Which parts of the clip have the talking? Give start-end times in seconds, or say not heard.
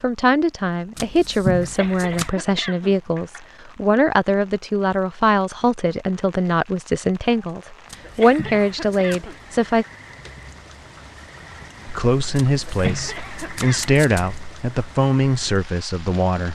0.0-9.8, 11.8-16.5.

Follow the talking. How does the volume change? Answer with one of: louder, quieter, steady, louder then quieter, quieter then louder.
steady.